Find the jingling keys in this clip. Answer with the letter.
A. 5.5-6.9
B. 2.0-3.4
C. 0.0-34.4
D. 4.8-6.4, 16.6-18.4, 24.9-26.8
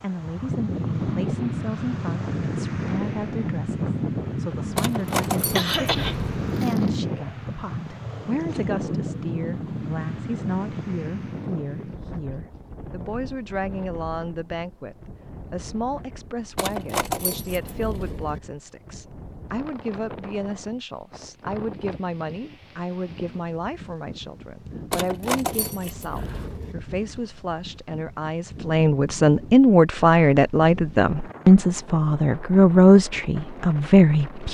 D.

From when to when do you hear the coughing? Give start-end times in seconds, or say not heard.
5.5-6.9.